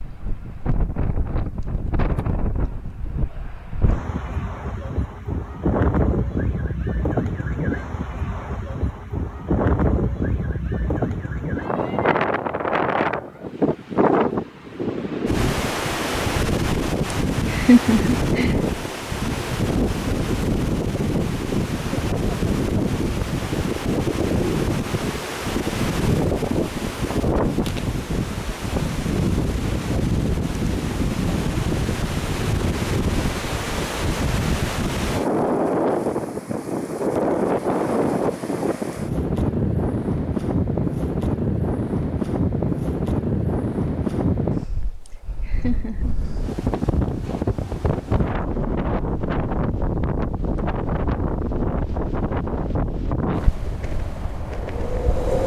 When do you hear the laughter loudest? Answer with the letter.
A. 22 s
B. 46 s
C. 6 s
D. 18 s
D.